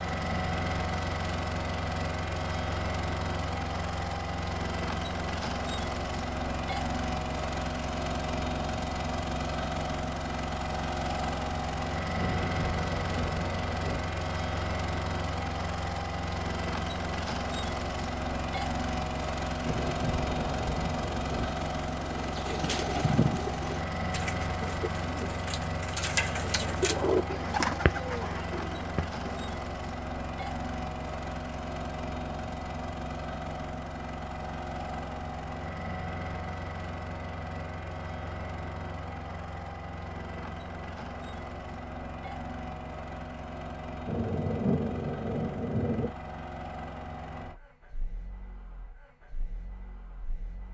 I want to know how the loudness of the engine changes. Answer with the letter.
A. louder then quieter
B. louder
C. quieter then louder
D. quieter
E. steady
D.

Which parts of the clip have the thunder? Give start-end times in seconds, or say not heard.
12.2-14.0, 19.6-21.5, 44.0-46.1.